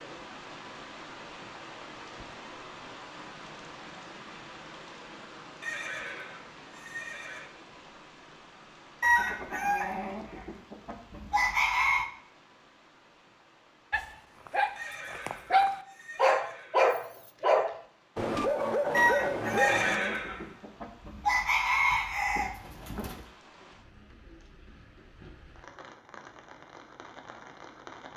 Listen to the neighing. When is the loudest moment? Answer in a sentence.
The loudest moment of the neighing is at 20 seconds.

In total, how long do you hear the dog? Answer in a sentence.
The dog can be heard for 6 seconds in total.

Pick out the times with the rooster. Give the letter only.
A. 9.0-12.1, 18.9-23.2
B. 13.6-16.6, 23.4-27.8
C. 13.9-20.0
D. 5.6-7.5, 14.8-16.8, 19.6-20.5
A.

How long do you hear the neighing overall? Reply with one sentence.
The neighing can be heard for 5 seconds in total.